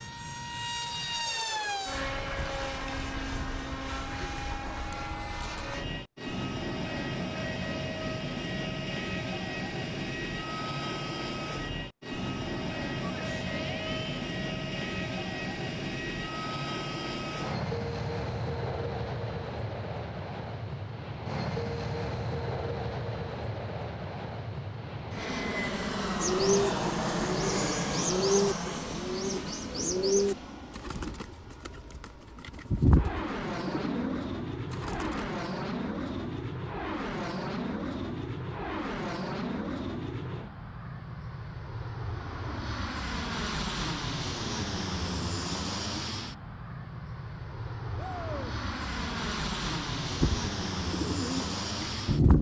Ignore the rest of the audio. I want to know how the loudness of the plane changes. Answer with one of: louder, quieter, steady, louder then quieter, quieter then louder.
steady.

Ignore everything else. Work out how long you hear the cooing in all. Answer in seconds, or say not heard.
11 s.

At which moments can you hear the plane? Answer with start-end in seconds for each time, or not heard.
0.0-52.3.